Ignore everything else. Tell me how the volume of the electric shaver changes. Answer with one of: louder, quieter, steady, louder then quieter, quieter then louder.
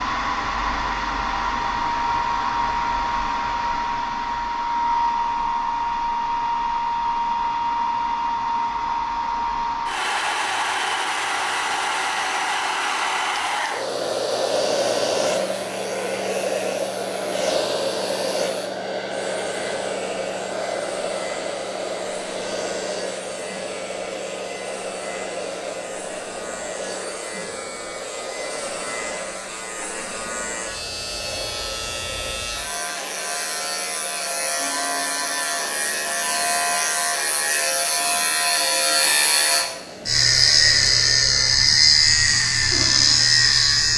louder.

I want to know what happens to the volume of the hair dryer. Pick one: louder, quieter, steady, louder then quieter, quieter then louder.
quieter.